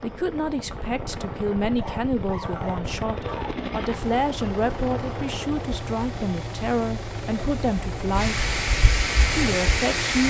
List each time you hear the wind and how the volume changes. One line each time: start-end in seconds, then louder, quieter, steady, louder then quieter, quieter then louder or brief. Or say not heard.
0.0-10.2 quieter then louder.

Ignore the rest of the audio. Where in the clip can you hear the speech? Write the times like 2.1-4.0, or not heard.
0.0-8.4, 9.3-10.2.